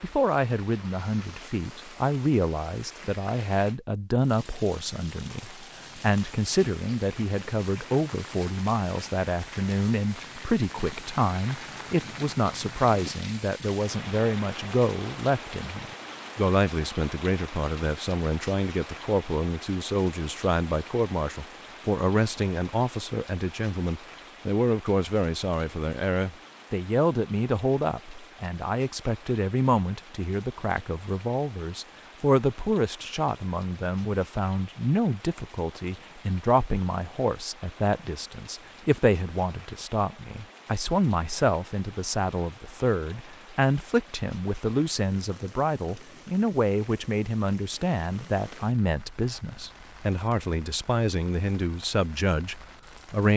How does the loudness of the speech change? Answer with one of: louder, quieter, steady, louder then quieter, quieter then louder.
steady.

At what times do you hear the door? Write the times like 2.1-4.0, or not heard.
not heard.